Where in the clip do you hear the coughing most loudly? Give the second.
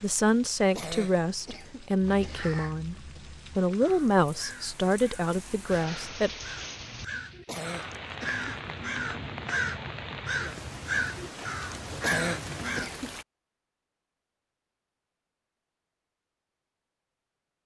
12 s.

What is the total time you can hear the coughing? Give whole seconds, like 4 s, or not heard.
3 s.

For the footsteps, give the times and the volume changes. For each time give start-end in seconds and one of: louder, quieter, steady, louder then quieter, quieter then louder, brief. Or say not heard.
not heard.